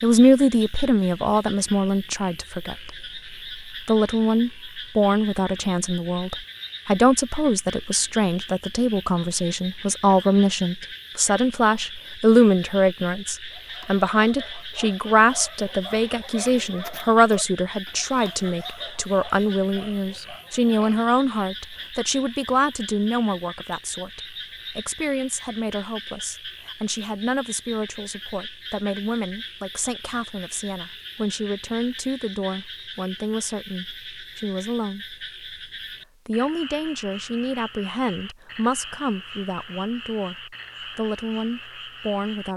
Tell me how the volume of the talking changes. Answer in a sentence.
The loudness of the talking goes down.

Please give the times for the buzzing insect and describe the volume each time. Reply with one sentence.
You can't hear the buzzing insect here.